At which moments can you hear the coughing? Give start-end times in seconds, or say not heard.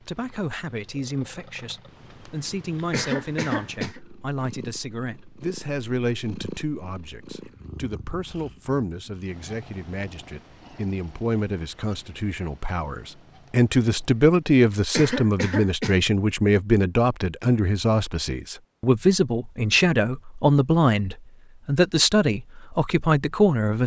2.9-4.0, 14.9-15.9.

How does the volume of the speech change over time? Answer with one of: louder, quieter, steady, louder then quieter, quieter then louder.
louder.